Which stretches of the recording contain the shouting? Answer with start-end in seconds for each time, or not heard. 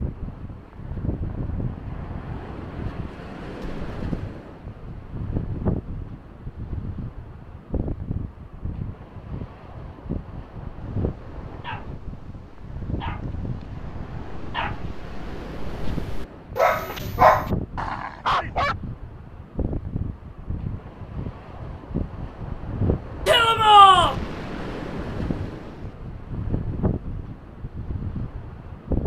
23.2-24.1.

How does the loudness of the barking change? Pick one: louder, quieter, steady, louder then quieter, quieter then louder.
quieter then louder.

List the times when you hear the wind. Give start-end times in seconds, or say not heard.
0.0-29.0.